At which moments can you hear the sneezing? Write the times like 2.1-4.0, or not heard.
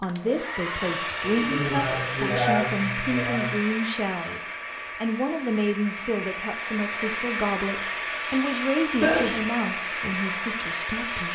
1.2-3.6, 9.0-9.4.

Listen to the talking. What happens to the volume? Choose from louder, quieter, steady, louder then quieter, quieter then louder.
steady.